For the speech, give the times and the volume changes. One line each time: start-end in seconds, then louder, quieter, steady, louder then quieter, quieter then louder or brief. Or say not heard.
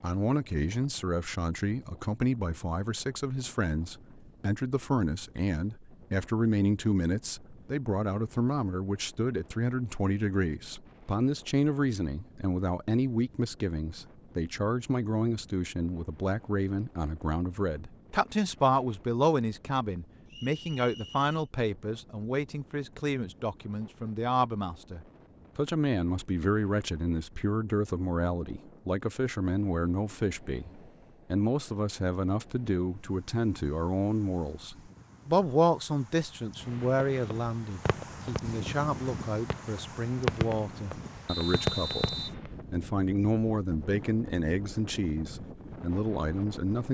0.0-46.9 steady.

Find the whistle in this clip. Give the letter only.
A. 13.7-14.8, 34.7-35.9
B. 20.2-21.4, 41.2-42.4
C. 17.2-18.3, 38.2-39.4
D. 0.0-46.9
B.